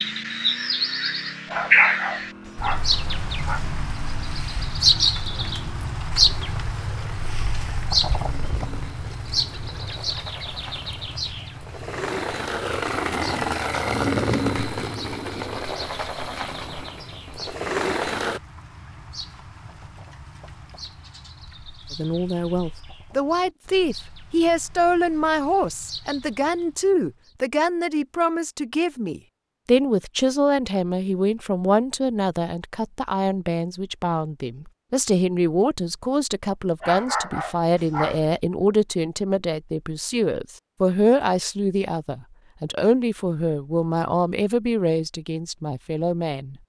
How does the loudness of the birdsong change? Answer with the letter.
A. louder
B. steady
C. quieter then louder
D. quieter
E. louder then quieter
D.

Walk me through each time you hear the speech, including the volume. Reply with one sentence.
The speech can be heard from 21.9 to 46.5 s, at a steady volume.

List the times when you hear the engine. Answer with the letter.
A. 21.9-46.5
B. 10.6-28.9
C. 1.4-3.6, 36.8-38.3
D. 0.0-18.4
D.